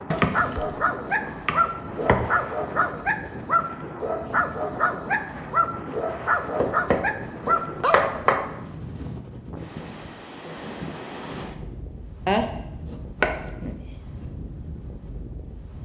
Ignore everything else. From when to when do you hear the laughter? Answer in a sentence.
The laughter can't be heard in this clip.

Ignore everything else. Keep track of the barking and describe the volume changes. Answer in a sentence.
The loudness of the barking stays about the same.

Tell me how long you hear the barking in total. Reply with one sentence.
You can hear the barking for 8 seconds altogether.